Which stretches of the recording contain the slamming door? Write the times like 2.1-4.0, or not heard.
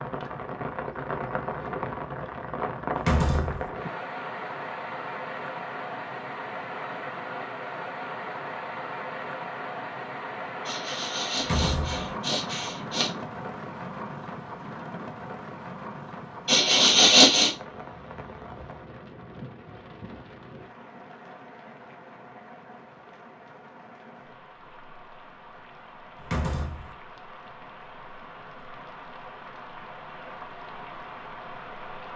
3.0-3.7, 11.3-12.1, 26.2-26.9.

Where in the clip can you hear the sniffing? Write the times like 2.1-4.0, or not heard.
10.7-13.1, 16.4-17.5.